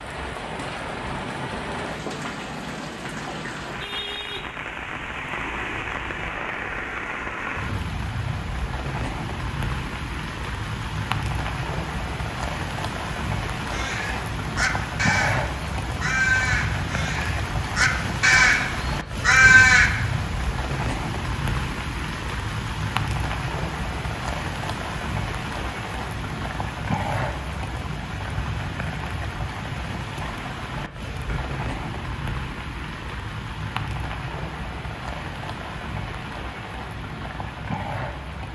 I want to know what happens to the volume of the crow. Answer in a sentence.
The loudness of the crow goes up.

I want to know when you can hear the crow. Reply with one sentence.
You can hear the crow from 13.6 to 19.9 s.